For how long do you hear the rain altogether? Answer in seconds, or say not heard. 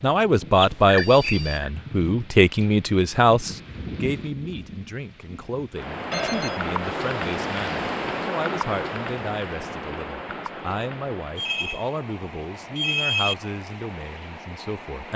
15 s.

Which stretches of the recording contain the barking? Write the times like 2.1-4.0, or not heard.
not heard.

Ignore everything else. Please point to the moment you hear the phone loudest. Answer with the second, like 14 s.
13 s.